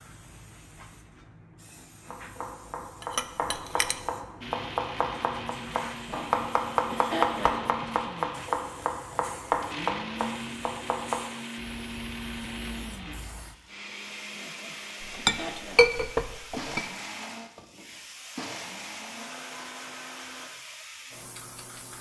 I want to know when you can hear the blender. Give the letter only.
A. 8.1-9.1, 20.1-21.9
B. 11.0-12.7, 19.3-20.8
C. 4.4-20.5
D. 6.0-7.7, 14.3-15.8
C.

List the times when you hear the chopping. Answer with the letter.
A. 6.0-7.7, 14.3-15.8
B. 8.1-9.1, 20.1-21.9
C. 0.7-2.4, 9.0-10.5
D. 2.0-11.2
D.